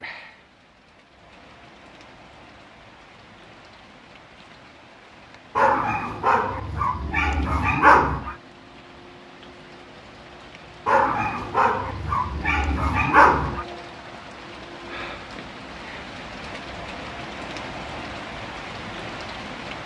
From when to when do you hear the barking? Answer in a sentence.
The barking can be heard from 5.5 to 8.3 s and from 10.8 to 13.7 s.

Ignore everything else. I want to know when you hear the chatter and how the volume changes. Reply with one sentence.
You can't hear the chatter here.